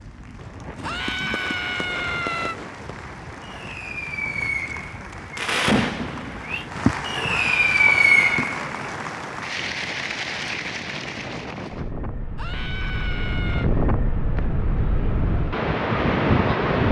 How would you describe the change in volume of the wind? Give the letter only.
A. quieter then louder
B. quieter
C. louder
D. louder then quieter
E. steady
C.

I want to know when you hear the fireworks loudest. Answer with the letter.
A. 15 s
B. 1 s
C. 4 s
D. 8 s
D.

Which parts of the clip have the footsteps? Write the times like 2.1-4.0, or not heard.
not heard.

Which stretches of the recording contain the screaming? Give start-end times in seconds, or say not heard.
0.8-2.5, 7.2-8.4, 12.3-13.7.